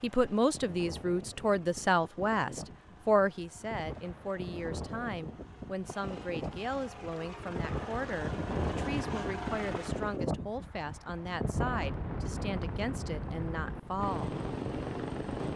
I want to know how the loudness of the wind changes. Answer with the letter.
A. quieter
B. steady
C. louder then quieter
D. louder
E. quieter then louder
D.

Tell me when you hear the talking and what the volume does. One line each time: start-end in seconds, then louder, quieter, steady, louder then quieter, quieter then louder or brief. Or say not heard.
0.0-14.3 quieter.